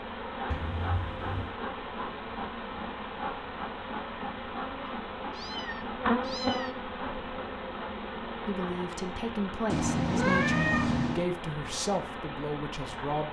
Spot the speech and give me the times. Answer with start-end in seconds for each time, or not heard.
8.4-13.2.